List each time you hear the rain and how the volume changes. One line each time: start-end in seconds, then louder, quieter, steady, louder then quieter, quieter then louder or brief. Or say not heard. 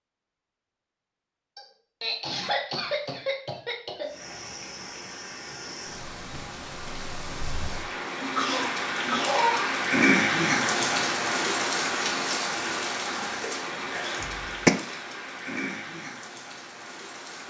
4.0-17.4 louder then quieter.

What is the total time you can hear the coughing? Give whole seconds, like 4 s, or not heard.
5 s.